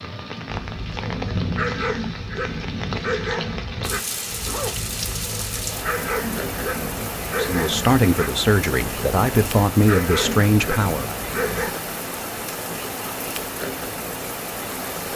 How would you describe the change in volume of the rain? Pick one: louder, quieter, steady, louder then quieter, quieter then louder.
steady.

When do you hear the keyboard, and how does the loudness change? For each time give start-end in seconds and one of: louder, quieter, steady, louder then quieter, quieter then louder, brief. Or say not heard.
not heard.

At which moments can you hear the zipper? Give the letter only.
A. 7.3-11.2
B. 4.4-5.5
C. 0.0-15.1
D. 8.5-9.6
B.